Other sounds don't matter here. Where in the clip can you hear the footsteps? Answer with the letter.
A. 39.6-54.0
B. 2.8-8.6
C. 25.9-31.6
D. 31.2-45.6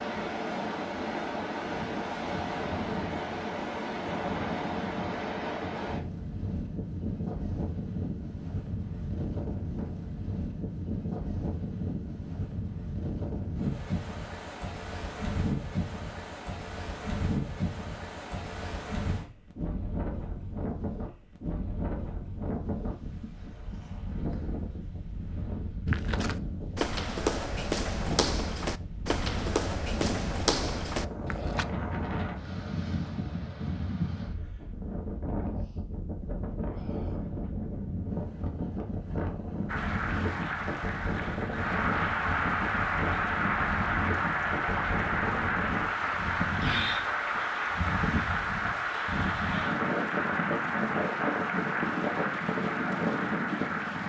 C.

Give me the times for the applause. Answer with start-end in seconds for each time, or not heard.
39.6-54.0.